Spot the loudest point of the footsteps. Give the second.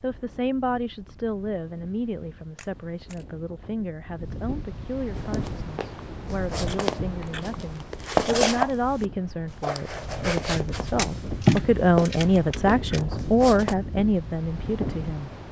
8 s.